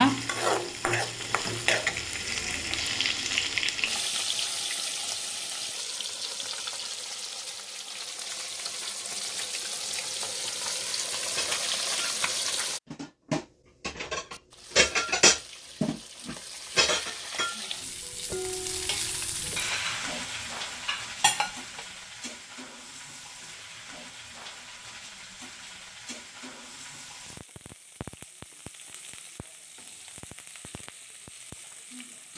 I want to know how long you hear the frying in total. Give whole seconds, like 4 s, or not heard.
31 s.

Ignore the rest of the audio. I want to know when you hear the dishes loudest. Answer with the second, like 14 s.
15 s.